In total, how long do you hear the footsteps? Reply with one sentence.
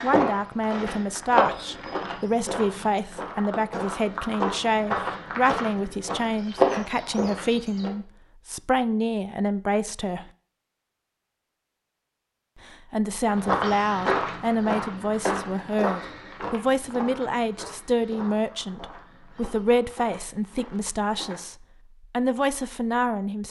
The footsteps can be heard for 16 seconds in total.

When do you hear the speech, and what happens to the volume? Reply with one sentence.
The speech can be heard from 0.0 to 10.2 s, at a steady volume; and from 12.7 to 23.4 s, at a steady volume.